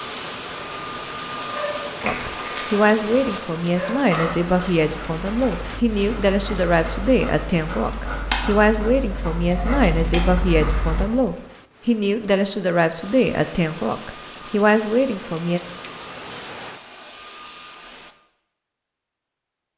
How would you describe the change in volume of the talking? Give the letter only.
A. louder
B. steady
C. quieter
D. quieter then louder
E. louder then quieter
B.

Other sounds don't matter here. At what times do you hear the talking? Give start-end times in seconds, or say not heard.
2.0-15.6.